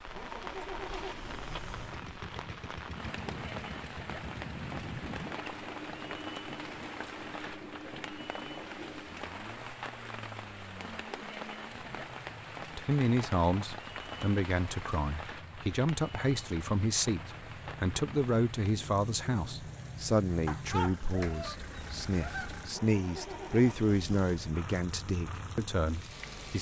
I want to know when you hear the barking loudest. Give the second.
21 s.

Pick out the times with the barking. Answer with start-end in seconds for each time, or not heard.
20.4-22.5.